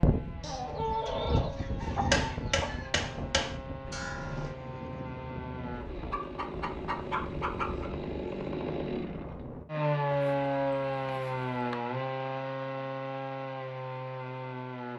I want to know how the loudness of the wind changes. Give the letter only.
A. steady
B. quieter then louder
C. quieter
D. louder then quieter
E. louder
C.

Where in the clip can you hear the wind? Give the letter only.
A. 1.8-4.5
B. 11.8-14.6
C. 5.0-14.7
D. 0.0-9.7
D.